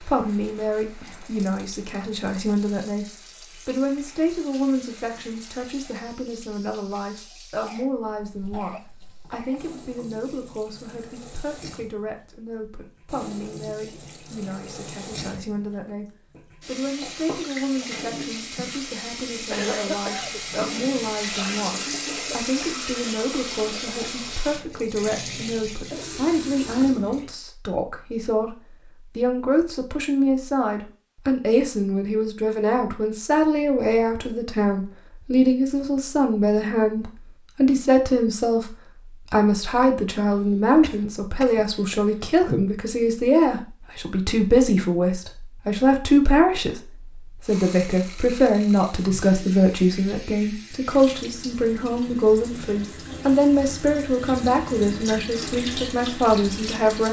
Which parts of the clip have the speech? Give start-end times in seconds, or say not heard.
0.0-3.0, 3.6-57.0.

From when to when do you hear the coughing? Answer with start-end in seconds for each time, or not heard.
7.6-10.1, 19.5-20.4, 40.3-42.2.